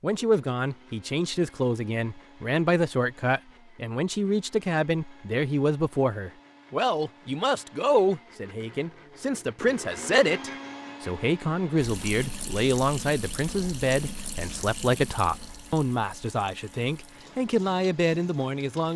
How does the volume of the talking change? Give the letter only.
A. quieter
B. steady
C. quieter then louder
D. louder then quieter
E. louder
B.